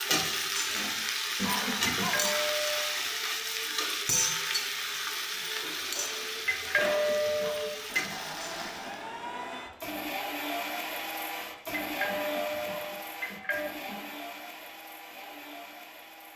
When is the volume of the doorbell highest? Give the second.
7 s.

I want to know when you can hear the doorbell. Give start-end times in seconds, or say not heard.
1.9-3.0, 6.5-8.2, 11.8-13.7.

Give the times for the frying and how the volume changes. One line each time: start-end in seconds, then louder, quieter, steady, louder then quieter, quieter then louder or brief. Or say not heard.
0.0-9.1 quieter.